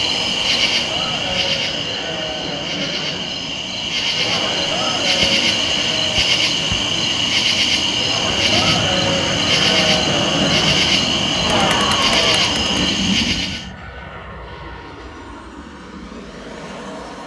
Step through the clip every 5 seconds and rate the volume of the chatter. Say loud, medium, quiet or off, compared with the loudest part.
medium, loud, loud, off.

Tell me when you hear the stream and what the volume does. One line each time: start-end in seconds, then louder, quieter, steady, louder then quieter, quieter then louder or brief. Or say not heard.
not heard.